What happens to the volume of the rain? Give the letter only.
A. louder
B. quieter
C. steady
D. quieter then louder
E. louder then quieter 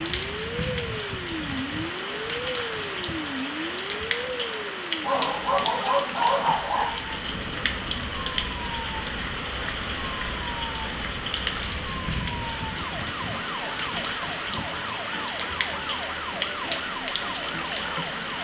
C.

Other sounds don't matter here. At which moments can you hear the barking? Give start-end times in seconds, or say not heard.
5.0-6.8.